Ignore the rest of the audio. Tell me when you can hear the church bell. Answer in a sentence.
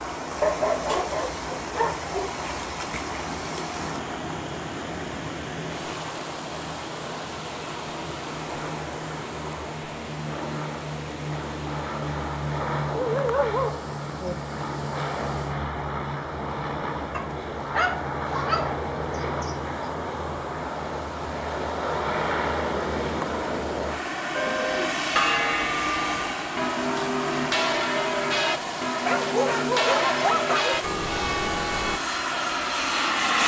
The church bell can be heard from 24.3 to 32.0 s.